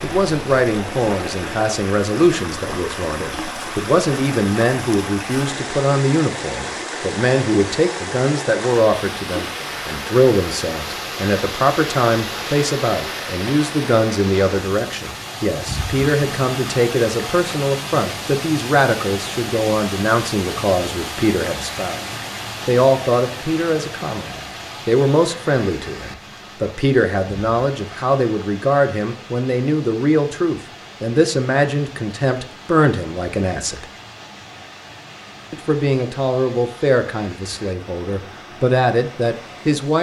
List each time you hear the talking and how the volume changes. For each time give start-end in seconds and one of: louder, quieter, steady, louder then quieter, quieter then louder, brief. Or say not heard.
0.0-22.0 steady
22.6-33.9 steady
35.5-39.9 quieter then louder.